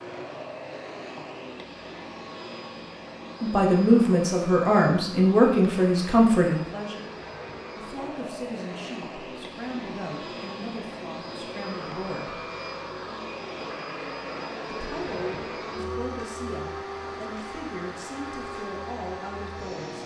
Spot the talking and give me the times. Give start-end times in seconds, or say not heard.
3.4-7.2, 7.8-12.4, 14.7-20.0.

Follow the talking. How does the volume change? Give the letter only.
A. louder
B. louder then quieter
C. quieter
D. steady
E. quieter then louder
C.